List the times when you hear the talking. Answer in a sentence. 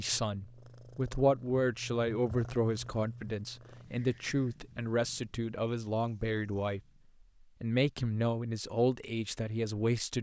You can hear the talking from 0.0 to 6.8 s and from 7.6 to 10.1 s.